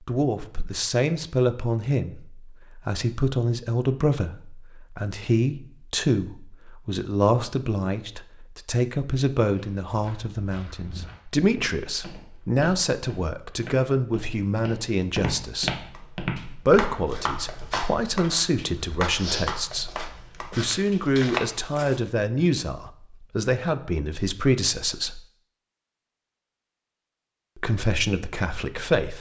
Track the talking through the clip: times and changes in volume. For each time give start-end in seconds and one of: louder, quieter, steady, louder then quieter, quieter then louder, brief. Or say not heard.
0.1-25.2 steady
27.6-29.1 brief.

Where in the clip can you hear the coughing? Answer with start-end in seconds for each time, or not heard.
not heard.